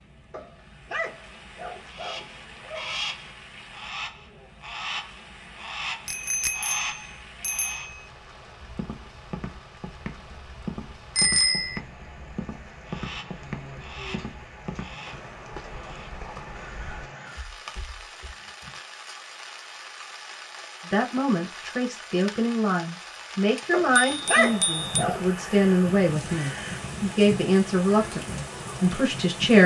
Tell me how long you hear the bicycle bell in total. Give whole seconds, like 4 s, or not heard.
4 s.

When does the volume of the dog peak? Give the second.
24 s.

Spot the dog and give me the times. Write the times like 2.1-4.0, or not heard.
0.3-3.0, 23.7-25.2.